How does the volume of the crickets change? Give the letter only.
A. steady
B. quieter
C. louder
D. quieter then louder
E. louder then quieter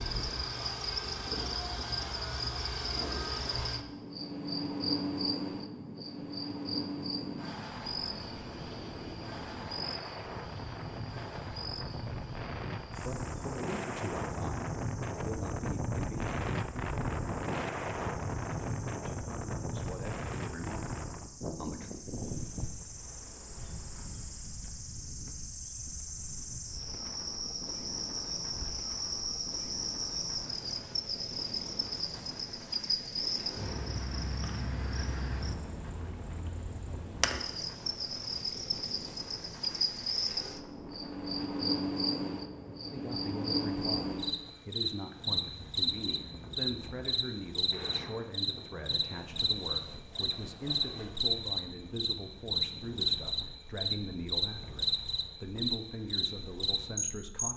D.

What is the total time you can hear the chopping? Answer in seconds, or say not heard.
not heard.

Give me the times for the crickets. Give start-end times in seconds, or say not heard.
0.0-57.5.